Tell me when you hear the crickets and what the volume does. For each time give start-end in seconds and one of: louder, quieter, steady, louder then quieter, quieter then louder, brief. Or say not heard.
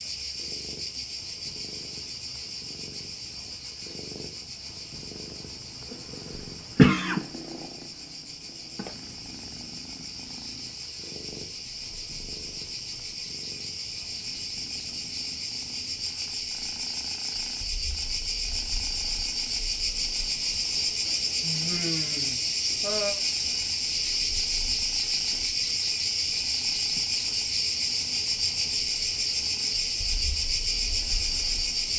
0.0-31.9 louder.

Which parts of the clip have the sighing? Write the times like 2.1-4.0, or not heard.
21.4-23.1.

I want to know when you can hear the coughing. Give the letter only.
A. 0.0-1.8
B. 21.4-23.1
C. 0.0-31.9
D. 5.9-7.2
D.